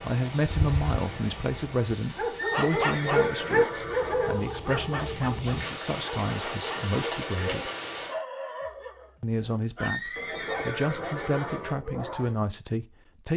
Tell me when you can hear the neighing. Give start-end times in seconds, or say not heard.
2.4-4.3, 9.8-11.8.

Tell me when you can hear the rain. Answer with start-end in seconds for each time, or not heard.
0.0-8.2.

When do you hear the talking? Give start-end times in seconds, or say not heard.
0.0-7.7, 9.2-13.3.